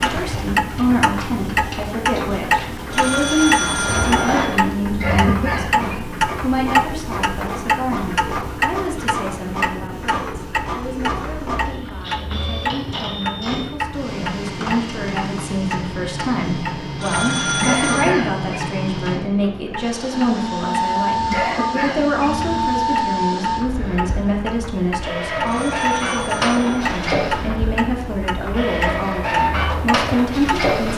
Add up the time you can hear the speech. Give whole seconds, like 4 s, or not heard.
31 s.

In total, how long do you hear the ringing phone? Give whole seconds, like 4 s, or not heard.
4 s.